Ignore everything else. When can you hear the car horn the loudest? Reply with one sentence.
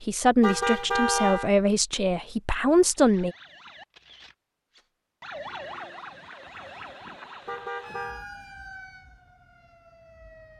The loudest moment of the car horn is at 1 second.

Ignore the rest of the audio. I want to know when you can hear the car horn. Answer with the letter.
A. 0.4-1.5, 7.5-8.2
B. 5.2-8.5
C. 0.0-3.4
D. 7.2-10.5
A.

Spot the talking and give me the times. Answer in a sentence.
The talking can be heard from 0.0 to 3.4 s.